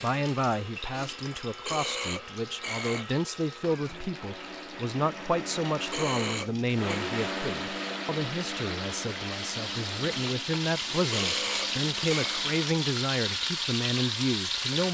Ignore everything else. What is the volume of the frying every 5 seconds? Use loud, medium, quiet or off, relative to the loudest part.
quiet, medium, loud.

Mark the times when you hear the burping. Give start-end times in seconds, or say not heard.
1.6-3.1, 5.9-7.0, 11.1-12.4.